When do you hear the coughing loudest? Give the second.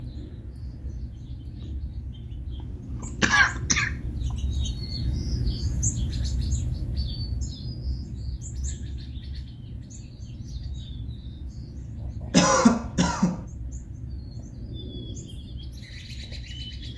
13 s.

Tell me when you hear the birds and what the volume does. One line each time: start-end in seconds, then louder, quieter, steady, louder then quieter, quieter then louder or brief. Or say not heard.
0.0-16.9 louder then quieter.